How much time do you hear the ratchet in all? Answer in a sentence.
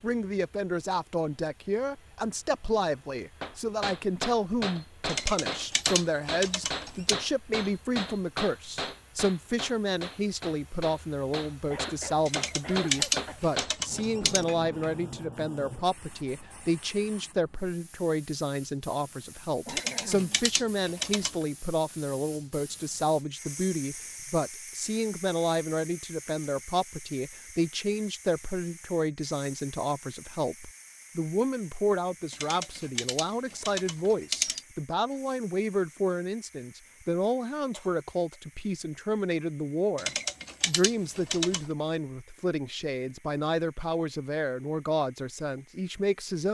You can hear the ratchet for 10 seconds altogether.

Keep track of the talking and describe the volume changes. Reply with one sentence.
The loudness of the talking stays about the same.